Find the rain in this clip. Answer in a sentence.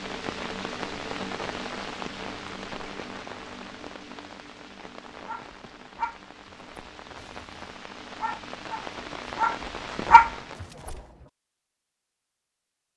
You can hear the rain from 0.0 to 10.7 s.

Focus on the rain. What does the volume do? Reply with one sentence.
The volume of the rain goes down, then up.